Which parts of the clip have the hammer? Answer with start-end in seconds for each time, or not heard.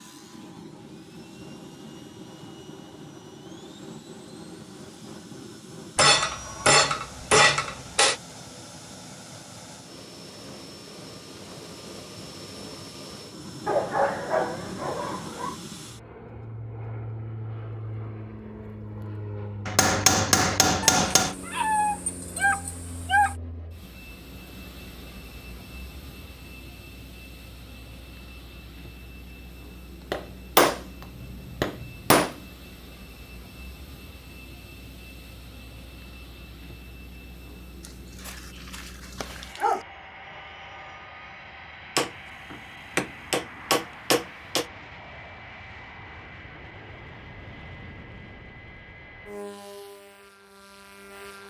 6.0-8.2, 19.6-21.4, 30.1-30.8, 31.6-32.4, 42.0-44.6.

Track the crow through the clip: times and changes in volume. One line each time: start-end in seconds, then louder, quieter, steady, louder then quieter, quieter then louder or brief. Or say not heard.
not heard.